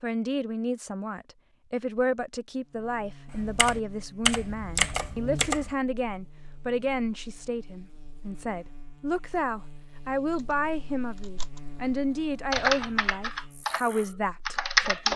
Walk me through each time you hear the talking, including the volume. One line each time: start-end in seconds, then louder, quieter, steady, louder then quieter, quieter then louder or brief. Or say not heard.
0.0-15.1 steady.